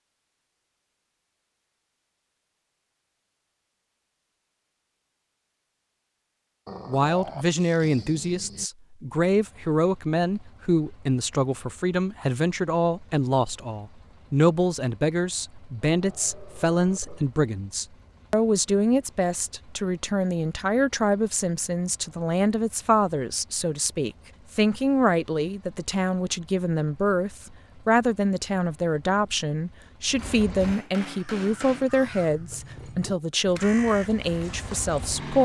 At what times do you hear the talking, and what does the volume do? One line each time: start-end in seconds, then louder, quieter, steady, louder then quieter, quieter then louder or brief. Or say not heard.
6.8-35.4 steady.